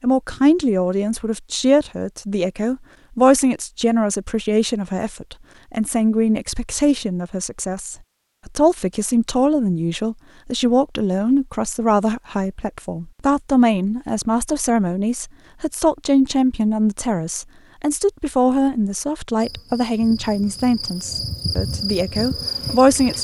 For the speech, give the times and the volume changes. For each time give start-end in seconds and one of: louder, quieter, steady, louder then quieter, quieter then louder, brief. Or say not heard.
0.0-23.2 steady.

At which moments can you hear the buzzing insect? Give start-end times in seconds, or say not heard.
19.4-23.2.